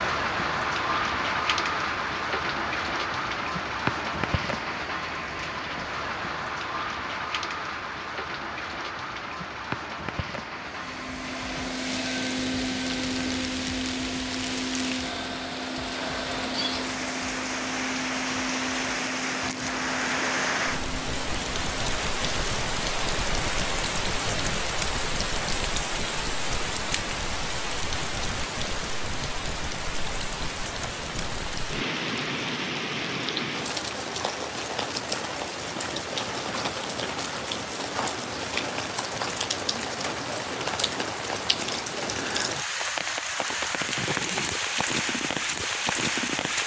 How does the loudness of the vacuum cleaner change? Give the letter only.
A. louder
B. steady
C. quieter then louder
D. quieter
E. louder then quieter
D.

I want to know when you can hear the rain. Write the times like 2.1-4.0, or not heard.
0.0-46.6.